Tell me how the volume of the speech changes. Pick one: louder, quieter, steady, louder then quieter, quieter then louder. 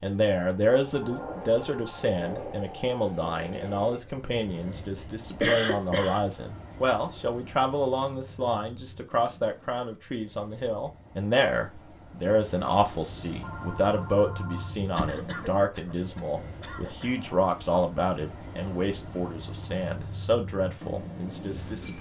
steady.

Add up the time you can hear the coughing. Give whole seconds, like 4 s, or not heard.
3 s.